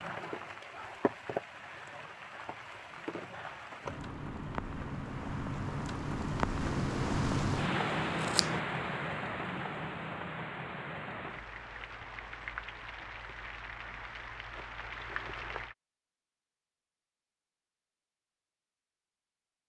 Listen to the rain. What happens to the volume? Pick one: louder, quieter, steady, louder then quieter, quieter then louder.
louder then quieter.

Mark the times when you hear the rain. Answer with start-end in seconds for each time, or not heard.
0.0-15.8.